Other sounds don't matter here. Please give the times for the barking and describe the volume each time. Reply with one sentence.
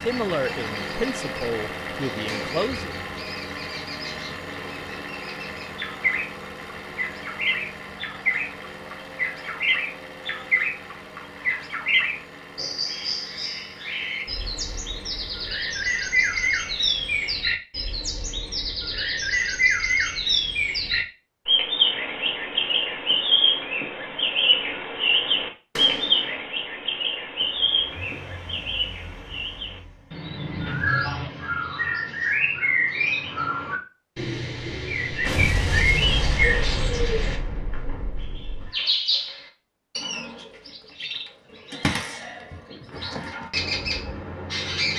You can't hear the barking here.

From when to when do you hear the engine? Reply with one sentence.
You can hear the engine from 0.0 to 17.4 s and from 27.4 to 30.9 s.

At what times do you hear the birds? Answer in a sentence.
You can hear the birds from 0.0 to 44.9 s.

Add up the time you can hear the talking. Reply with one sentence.
The talking can be heard for 3 seconds in total.